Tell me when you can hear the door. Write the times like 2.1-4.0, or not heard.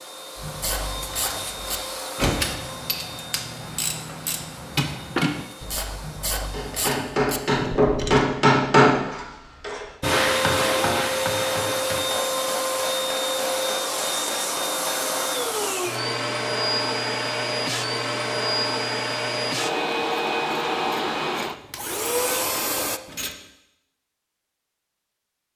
not heard.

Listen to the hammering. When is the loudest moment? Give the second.
9 s.